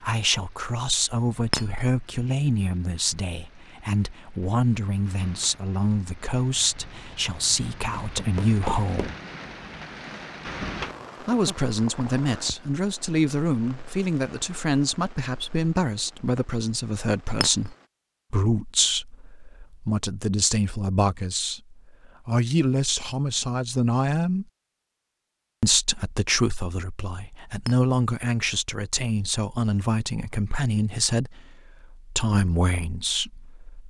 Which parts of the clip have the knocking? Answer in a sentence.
You can hear the knocking from 8.0 to 9.2 s.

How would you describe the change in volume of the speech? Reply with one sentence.
The volume of the speech stays about the same.